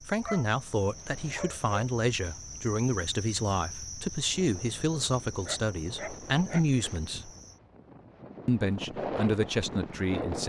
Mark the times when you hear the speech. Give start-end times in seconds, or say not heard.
0.0-7.3, 8.4-10.4.